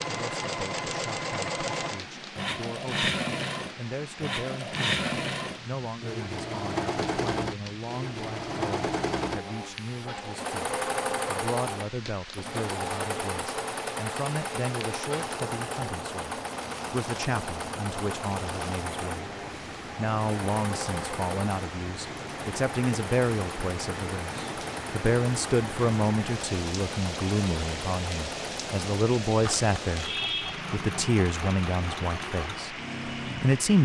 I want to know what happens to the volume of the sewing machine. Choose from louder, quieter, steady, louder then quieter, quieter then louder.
quieter.